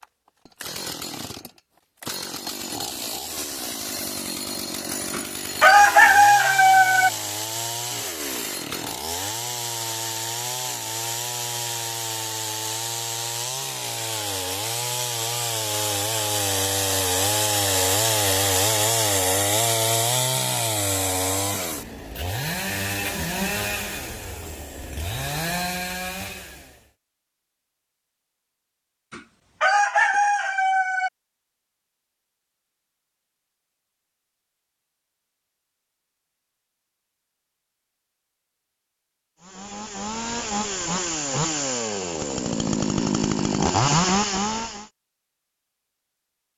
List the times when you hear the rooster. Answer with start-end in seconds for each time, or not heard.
5.1-7.1, 29.1-31.1.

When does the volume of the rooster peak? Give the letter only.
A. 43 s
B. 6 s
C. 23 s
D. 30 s
B.